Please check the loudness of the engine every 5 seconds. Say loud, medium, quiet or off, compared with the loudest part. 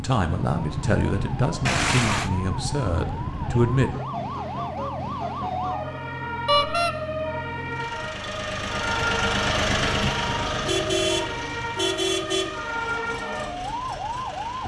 medium, loud, loud.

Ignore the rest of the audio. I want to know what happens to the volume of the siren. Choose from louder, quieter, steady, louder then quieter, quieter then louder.
steady.